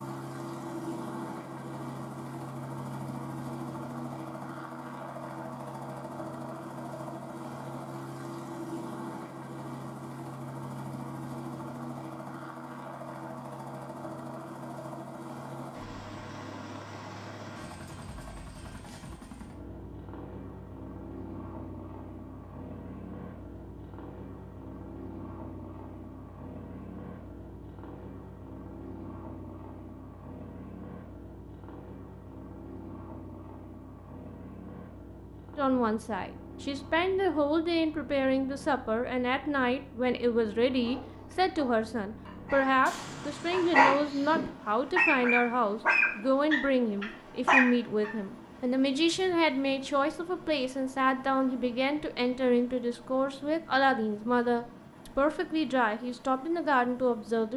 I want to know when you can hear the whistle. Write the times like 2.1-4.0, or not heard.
not heard.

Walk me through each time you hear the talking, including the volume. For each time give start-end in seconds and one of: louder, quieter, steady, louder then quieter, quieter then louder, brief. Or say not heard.
35.5-57.5 steady.